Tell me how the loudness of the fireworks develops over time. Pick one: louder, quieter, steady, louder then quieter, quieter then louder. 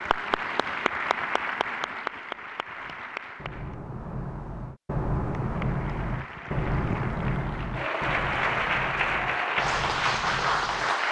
louder then quieter.